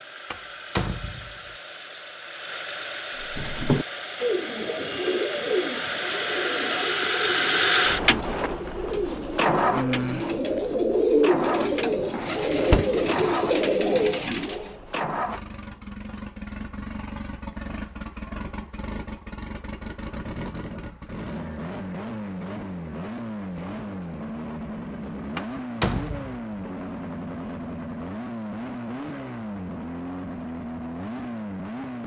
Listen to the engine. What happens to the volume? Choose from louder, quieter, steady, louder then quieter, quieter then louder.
louder then quieter.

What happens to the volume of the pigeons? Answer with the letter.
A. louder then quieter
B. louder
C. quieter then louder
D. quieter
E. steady
C.